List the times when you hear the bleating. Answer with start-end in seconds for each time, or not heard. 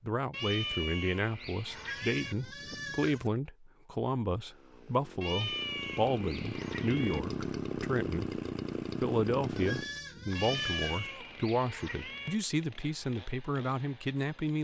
1.8-3.3, 9.6-11.1.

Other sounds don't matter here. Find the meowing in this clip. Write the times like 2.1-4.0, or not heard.
0.3-2.4, 5.2-7.2, 10.3-12.3.